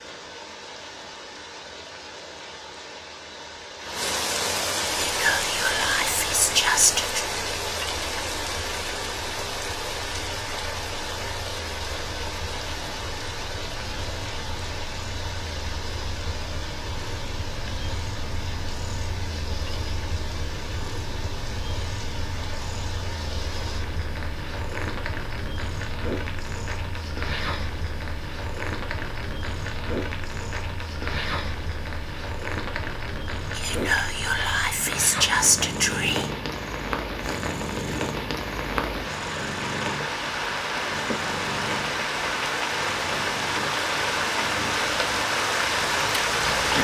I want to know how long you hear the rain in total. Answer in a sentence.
You can hear the rain for 47 seconds altogether.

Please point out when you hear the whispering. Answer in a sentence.
The whispering can be heard from 5.0 to 7.2 s and from 33.5 to 36.3 s.